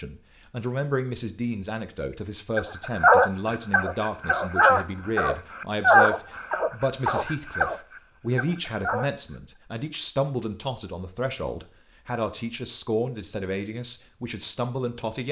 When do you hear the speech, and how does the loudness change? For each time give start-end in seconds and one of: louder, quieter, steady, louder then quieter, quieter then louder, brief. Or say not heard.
0.0-15.2 steady.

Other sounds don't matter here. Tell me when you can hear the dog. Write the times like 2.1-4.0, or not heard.
2.5-9.1.